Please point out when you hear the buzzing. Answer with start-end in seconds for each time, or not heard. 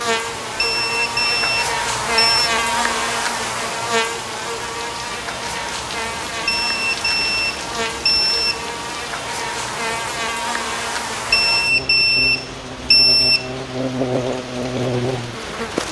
0.0-15.8.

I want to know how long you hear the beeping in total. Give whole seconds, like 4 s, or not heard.
6 s.